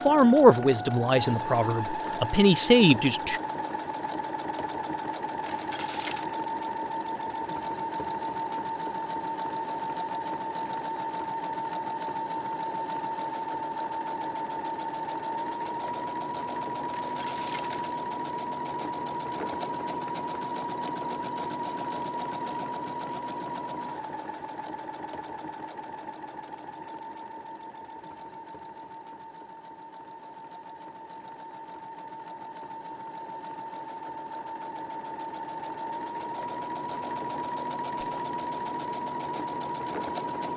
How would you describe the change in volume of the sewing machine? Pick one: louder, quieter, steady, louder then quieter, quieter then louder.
quieter then louder.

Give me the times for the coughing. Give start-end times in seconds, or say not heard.
not heard.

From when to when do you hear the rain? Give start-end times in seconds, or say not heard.
not heard.